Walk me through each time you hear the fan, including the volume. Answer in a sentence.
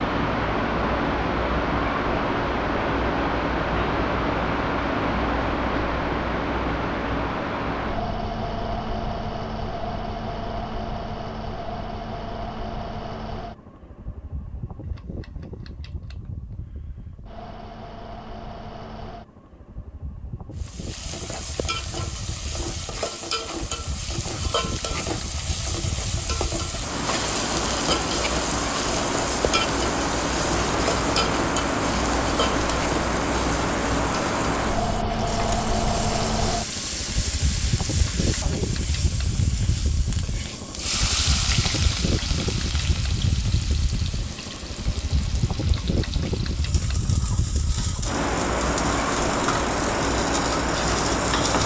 The fan can be heard from 0.0 to 51.6 s, getting quieter then louder.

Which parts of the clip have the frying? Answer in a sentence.
You can hear the frying from 20.6 to 51.6 s.